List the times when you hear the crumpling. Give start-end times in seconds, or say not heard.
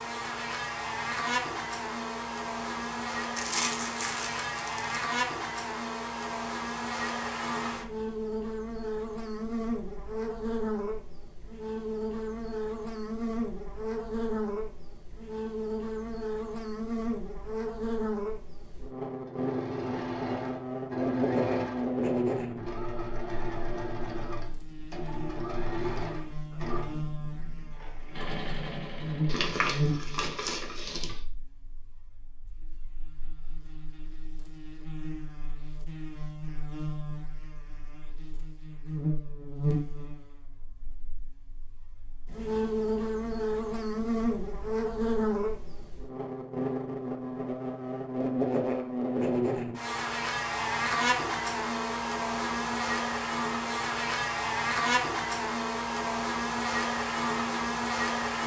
3.4-4.8, 29.2-31.1.